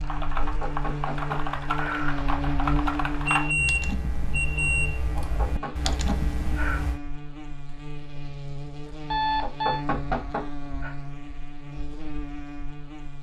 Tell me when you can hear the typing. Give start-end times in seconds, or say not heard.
0.0-7.0.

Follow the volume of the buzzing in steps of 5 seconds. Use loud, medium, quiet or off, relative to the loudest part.
loud, medium, medium.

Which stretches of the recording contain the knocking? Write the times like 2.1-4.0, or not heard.
0.3-2.2, 5.2-6.8, 9.4-10.9.